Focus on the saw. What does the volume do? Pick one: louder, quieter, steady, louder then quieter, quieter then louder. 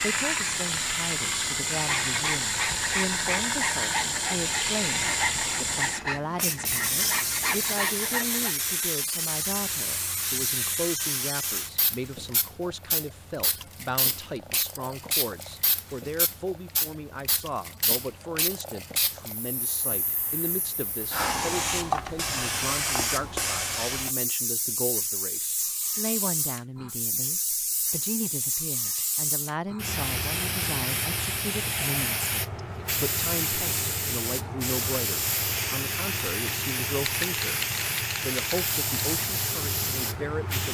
steady.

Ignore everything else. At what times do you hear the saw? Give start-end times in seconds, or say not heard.
1.8-8.6.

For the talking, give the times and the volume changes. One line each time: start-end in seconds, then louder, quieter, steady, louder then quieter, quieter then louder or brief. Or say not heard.
0.0-37.5 steady
38.2-40.6 brief.